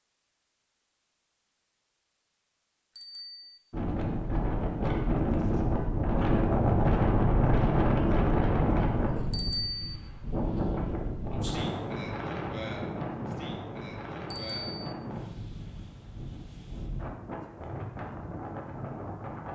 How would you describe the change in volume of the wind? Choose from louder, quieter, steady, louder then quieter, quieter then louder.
quieter.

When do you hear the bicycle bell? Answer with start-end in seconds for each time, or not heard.
3.0-3.6, 9.3-9.9, 14.3-14.9.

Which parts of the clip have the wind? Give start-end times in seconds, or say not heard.
3.7-19.4.